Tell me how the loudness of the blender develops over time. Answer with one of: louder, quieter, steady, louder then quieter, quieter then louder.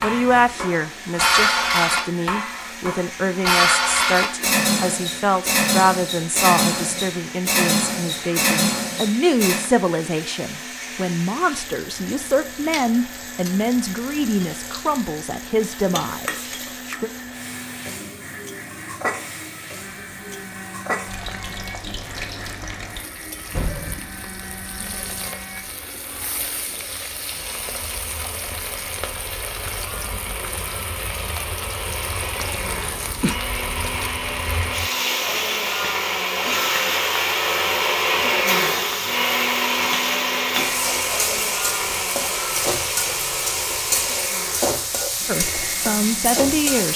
louder.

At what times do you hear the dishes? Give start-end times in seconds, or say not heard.
0.0-9.7.